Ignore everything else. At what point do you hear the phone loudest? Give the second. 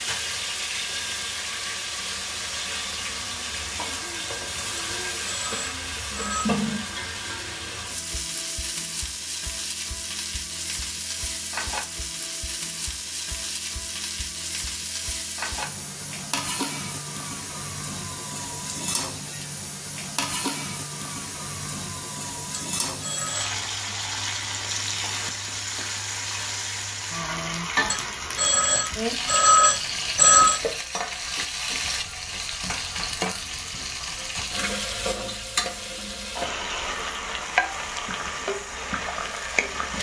30 s.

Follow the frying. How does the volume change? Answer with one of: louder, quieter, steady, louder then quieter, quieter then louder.
steady.